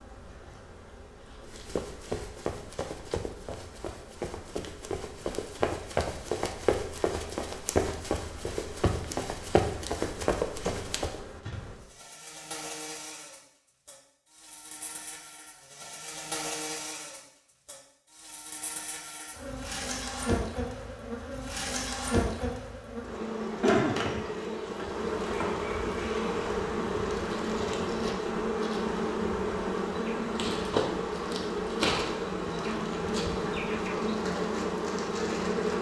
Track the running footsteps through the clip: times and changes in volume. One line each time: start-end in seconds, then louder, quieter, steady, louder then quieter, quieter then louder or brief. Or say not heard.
1.4-11.2 louder.